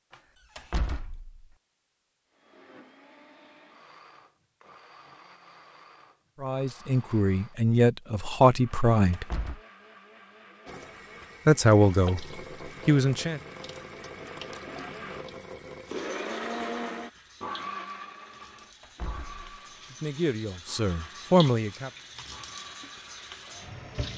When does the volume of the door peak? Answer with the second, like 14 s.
1 s.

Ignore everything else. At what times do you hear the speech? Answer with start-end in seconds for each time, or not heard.
6.4-9.2, 11.4-12.2, 12.8-13.4, 19.9-21.9.